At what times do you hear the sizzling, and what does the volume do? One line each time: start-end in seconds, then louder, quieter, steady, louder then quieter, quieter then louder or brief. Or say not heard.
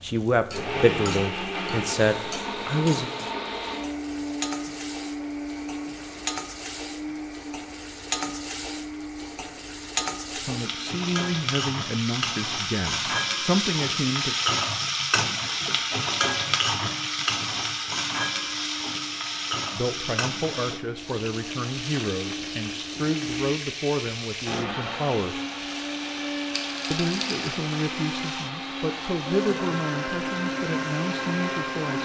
0.0-32.0 louder then quieter.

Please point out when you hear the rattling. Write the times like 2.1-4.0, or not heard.
26.5-27.6.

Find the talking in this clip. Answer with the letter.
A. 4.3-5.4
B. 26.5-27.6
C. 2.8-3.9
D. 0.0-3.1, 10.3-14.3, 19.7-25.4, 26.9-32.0
D.